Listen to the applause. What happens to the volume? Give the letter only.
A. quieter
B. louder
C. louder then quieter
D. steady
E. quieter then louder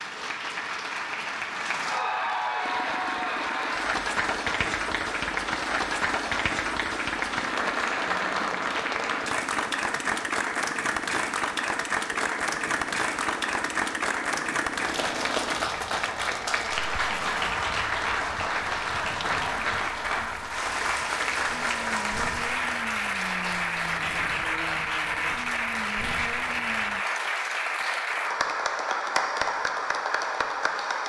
D.